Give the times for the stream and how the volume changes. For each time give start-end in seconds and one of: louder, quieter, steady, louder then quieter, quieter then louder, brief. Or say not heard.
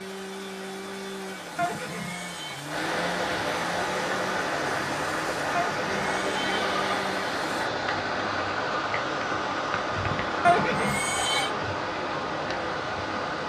0.0-13.4 louder.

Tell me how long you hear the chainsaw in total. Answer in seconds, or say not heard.
8 s.